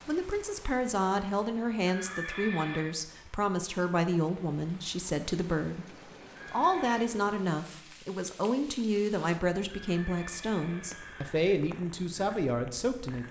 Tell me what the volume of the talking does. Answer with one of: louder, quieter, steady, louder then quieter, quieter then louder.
steady.